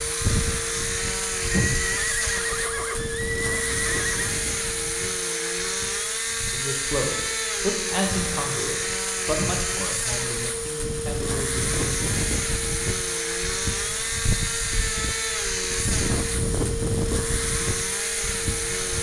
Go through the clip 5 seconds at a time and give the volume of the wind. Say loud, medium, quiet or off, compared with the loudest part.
loud, medium, loud, loud.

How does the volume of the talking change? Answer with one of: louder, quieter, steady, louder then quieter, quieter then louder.
quieter.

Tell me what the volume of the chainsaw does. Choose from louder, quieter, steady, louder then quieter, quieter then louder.
steady.